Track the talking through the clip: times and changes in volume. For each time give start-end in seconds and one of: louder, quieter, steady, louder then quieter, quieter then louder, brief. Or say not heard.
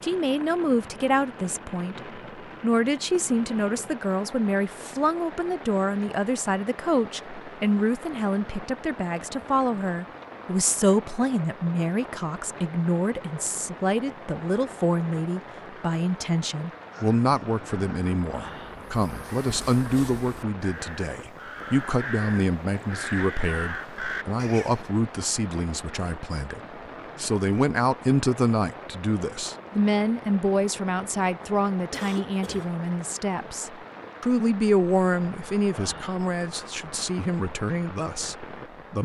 0.0-38.9 steady.